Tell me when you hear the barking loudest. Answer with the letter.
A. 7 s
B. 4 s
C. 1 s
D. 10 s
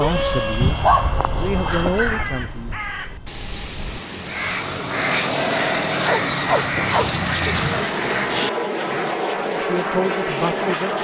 C.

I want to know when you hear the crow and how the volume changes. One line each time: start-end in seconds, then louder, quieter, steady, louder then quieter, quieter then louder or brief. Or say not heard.
1.9-9.1 louder.